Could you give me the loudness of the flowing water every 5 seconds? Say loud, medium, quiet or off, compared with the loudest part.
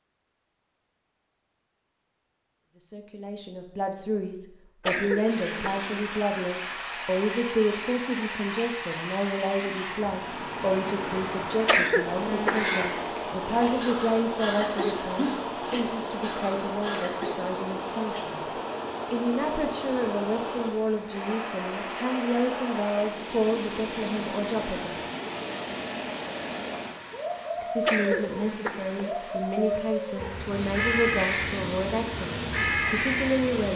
off, loud, loud, loud, loud, loud, loud.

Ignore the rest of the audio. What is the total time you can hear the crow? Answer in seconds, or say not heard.
9 s.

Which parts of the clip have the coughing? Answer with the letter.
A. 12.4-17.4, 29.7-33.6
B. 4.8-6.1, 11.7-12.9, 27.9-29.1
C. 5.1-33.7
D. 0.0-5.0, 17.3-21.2
B.